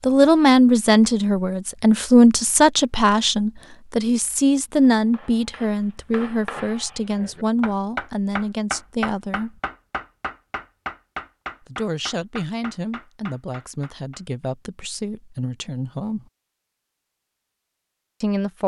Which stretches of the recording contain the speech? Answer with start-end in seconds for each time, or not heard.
0.0-9.6, 11.7-16.2, 18.2-18.6.